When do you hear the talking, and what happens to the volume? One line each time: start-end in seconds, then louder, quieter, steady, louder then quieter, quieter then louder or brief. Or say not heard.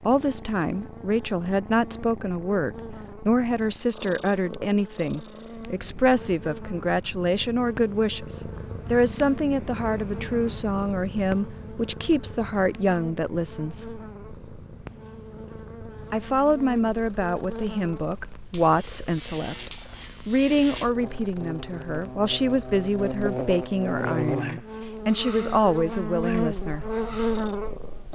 0.0-13.9 steady
16.1-26.9 steady.